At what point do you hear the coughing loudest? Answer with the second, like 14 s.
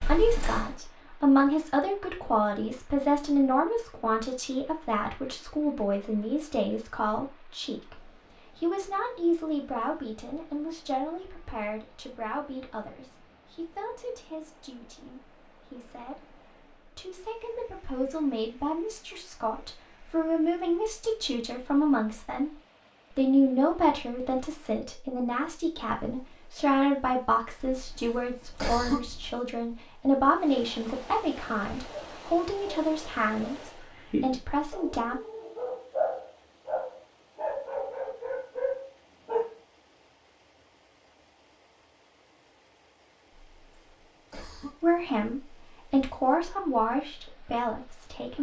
29 s.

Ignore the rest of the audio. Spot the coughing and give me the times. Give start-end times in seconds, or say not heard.
0.0-0.8, 27.6-29.3, 43.3-44.9.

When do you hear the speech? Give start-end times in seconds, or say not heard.
0.1-22.5, 23.1-35.2, 44.8-48.3.